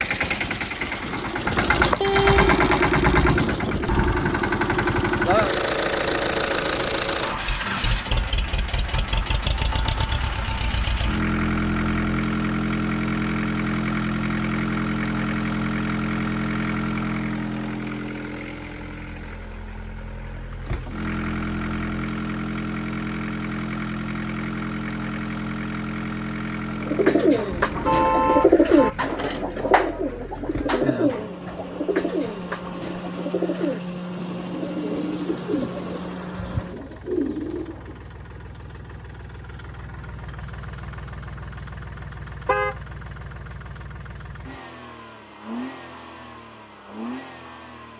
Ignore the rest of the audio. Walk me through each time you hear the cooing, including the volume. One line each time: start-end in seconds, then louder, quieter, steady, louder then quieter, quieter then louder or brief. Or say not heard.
26.8-38.0 quieter.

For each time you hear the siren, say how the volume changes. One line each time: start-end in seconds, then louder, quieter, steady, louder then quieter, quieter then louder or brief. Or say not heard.
not heard.